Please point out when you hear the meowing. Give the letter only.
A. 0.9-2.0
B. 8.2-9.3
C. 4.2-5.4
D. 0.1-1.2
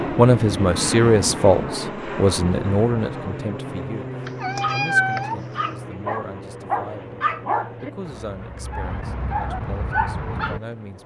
C.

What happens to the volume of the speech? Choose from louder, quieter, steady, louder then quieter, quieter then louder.
quieter.